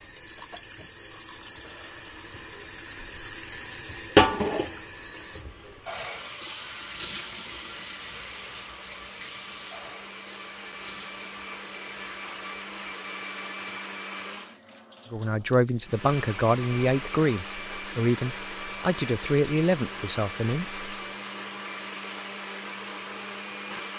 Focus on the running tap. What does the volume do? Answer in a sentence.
The loudness of the running tap goes down.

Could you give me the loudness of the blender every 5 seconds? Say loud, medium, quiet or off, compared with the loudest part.
quiet, medium, loud, loud, loud.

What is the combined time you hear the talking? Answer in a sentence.
The talking can be heard for 6 seconds in total.